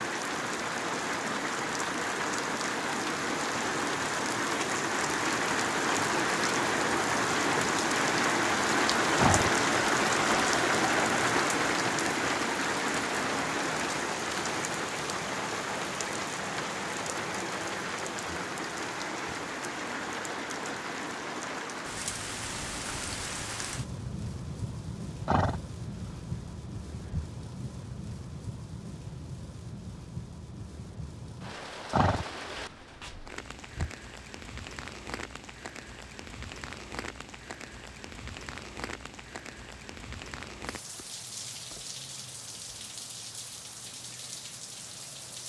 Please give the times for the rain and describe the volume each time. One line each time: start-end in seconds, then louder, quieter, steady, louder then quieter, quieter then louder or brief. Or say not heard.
0.0-45.4 quieter.